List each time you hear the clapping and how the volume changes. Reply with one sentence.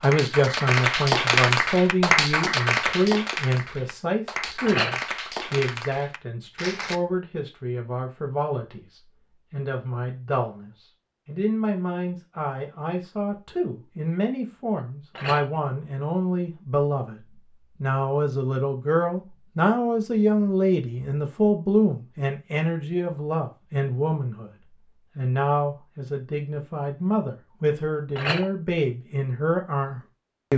You can hear the clapping from 0.0 to 7.0 s, getting quieter.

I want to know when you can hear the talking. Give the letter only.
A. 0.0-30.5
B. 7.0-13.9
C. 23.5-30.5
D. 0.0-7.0
A.